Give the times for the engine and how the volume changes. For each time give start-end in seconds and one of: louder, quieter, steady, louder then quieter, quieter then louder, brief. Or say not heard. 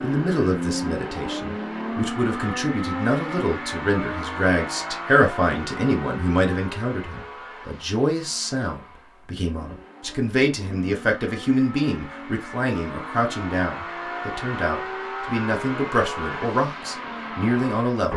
0.0-18.1 quieter then louder.